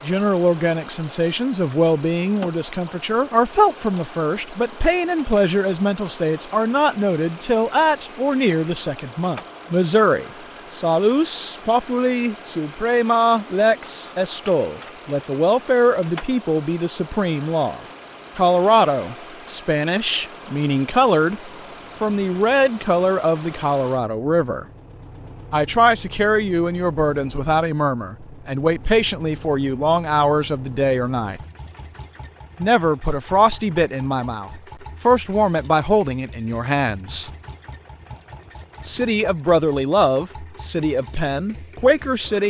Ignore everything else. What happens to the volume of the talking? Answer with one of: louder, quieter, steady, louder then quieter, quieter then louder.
steady.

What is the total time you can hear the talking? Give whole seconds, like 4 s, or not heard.
39 s.